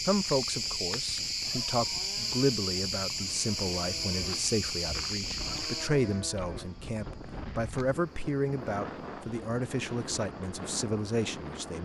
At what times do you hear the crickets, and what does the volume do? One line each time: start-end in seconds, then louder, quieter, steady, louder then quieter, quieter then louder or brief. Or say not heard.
0.0-11.8 quieter.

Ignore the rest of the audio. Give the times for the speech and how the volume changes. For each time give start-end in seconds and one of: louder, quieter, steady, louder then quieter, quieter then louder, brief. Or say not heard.
0.1-11.8 steady.